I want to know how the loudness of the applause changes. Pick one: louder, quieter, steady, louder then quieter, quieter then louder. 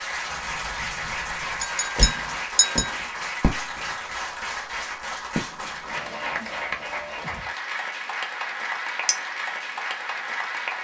steady.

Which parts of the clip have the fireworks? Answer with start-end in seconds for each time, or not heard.
0.3-4.0, 5.3-6.3.